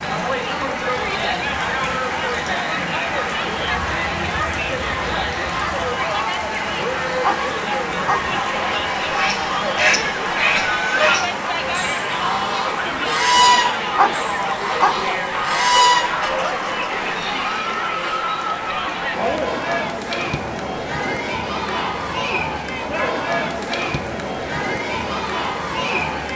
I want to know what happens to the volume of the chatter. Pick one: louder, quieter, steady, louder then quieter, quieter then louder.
steady.